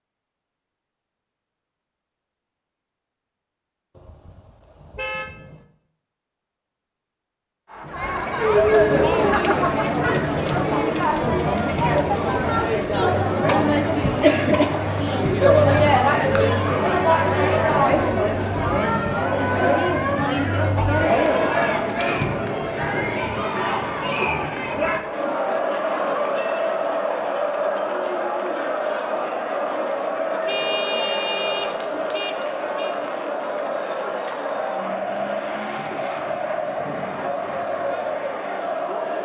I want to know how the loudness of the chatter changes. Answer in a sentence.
The volume of the chatter goes down.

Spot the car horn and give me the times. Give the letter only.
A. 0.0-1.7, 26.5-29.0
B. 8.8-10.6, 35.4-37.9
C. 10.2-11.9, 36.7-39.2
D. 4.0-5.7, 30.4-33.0
D.